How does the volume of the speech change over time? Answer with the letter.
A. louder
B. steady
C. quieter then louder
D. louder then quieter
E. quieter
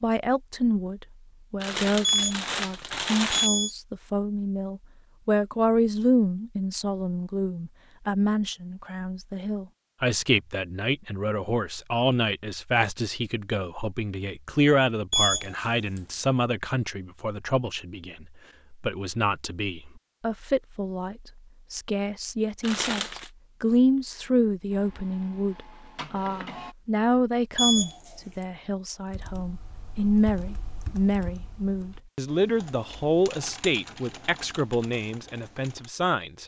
B.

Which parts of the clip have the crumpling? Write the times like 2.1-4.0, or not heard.
1.6-3.5, 22.6-23.3.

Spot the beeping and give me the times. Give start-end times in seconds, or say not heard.
2.0-3.8, 15.1-16.0, 27.6-28.1.